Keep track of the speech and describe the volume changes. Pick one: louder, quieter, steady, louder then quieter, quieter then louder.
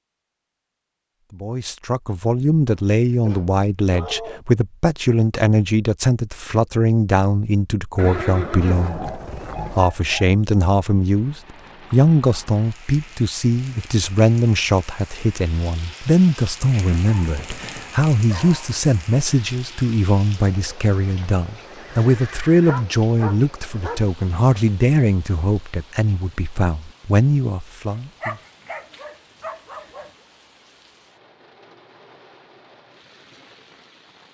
steady.